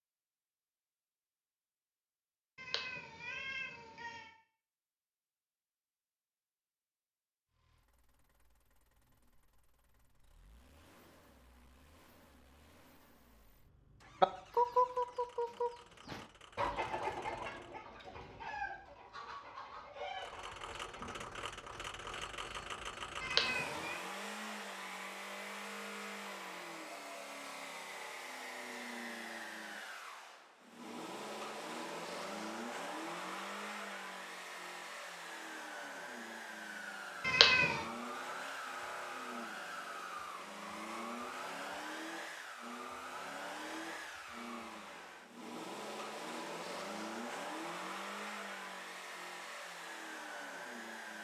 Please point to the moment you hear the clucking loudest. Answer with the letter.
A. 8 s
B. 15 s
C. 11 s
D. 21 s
B.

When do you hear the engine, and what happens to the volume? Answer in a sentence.
The engine can be heard from 7.5 to 17.8 s, getting louder; and from 20.1 to 51.2 s, at a steady volume.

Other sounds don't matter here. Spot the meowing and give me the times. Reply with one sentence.
The meowing can be heard from 2.5 to 4.3 s, from 23.2 to 24.0 s and from 37.2 to 37.9 s.